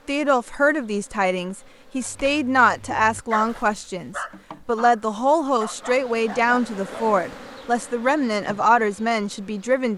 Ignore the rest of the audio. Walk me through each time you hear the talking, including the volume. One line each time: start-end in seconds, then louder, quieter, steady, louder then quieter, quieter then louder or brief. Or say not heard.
0.1-9.9 steady.